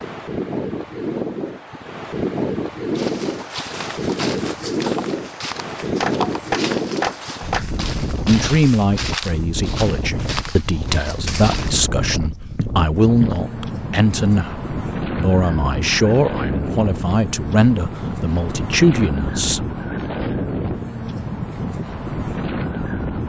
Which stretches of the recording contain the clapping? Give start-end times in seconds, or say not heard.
6.0-7.7.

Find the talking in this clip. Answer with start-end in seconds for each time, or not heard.
8.2-19.7.